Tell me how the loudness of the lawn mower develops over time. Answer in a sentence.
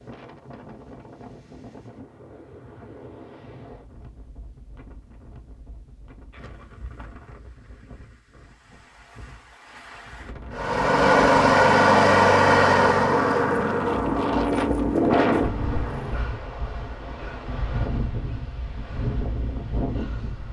The loudness of the lawn mower goes down.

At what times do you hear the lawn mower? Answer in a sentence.
You can hear the lawn mower from 10.5 to 16.3 s.